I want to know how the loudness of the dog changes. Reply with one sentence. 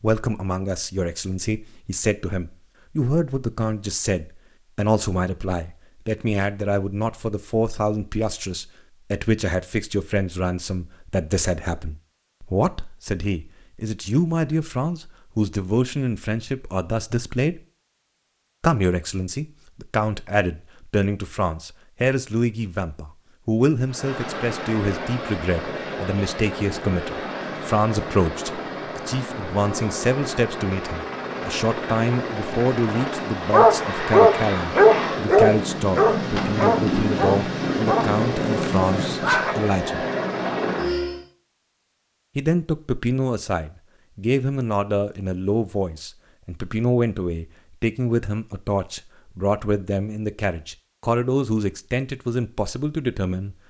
The volume of the dog goes down.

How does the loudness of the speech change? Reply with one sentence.
The volume of the speech stays about the same.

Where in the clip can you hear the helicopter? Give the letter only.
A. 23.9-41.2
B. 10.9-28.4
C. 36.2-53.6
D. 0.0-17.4
A.